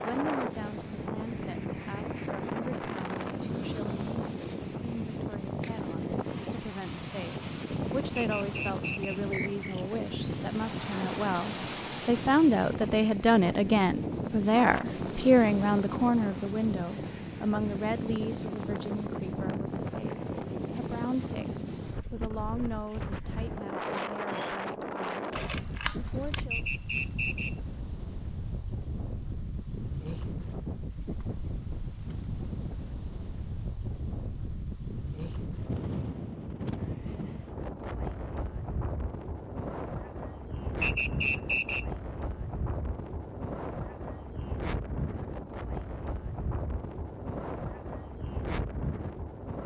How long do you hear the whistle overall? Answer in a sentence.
The whistle can be heard for 4 seconds in total.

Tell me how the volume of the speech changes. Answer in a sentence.
The volume of the speech goes up, then down.